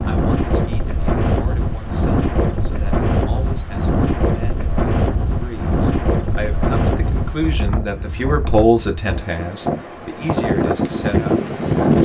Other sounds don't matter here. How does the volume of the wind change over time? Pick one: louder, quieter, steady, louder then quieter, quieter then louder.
quieter then louder.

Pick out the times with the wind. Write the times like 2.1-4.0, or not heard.
0.0-12.0.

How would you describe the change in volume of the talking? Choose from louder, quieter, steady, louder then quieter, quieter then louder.
louder then quieter.